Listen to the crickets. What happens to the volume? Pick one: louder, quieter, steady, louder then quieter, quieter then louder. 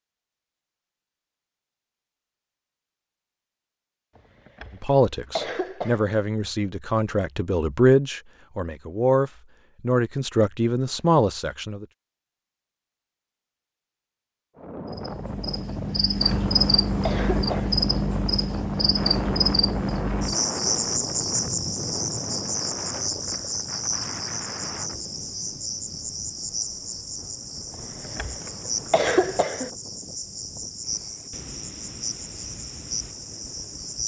quieter.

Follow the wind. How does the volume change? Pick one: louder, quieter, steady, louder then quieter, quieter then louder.
quieter.